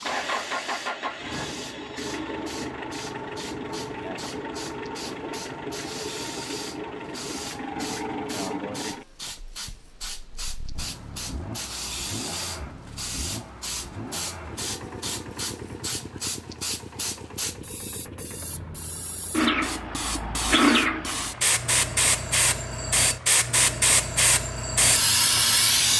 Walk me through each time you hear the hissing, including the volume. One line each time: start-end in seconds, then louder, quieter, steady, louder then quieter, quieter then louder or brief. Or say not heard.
0.0-25.9 louder.